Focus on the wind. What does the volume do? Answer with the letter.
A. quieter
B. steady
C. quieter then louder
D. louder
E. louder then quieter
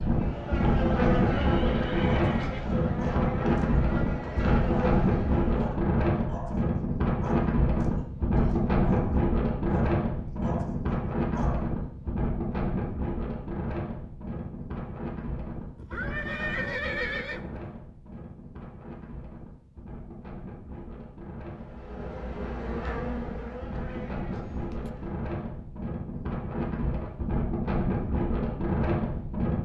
C.